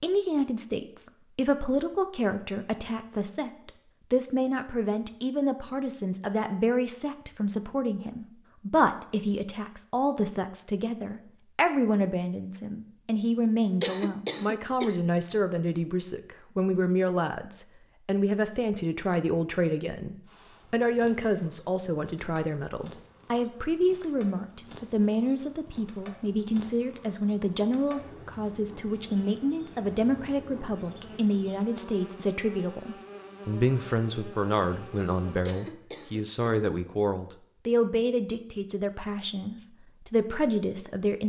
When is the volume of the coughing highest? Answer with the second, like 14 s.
14 s.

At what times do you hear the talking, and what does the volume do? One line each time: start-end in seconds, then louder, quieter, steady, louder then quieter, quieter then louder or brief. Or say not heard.
0.0-41.2 steady.